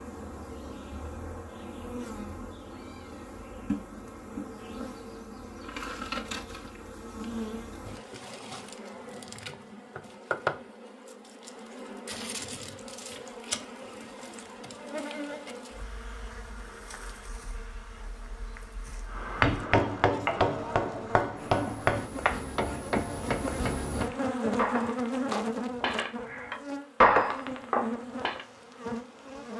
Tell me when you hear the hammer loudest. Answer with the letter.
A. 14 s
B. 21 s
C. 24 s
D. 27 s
D.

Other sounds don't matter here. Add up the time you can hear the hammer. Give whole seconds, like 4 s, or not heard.
9 s.